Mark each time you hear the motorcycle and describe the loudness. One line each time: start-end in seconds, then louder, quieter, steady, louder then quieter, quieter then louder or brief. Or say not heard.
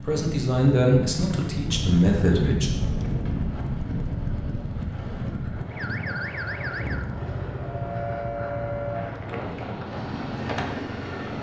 0.0-11.3 steady.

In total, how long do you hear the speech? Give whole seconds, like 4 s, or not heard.
3 s.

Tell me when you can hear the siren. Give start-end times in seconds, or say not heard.
5.7-9.2.